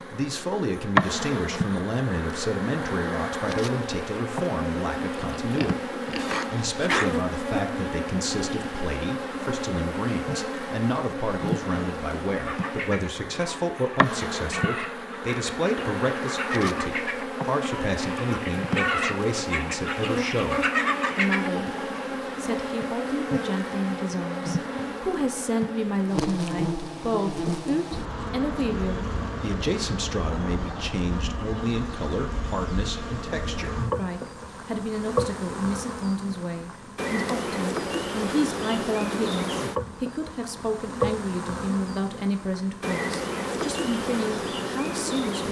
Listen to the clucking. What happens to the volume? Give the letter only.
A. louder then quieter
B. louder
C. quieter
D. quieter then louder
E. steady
B.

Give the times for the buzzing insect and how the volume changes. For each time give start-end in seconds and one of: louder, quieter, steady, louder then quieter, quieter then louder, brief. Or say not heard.
0.0-45.4 steady.